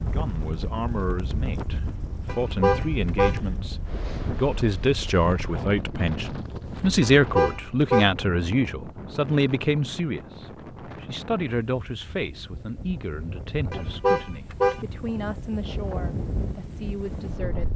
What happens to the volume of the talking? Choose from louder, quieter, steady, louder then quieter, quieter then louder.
louder then quieter.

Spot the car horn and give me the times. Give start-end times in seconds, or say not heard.
2.2-3.4, 7.0-8.2, 13.7-14.8.